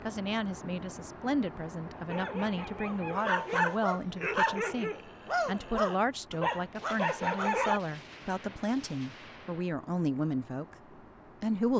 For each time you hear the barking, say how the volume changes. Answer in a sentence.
You can hear the barking from 1.9 to 7.8 s, getting louder.